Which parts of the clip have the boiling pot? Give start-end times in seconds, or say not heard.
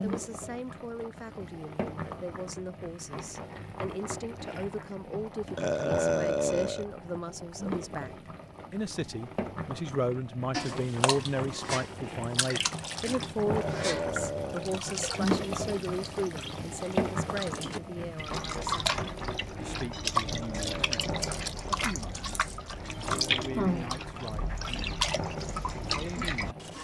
0.0-26.8.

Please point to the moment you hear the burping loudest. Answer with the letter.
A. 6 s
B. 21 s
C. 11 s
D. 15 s
A.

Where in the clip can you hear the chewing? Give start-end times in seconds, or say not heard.
not heard.